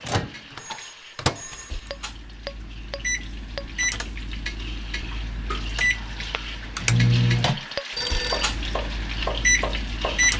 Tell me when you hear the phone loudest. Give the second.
8 s.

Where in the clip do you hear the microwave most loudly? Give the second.
7 s.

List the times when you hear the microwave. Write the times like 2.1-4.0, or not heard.
0.0-10.3.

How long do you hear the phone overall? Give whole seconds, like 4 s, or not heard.
2 s.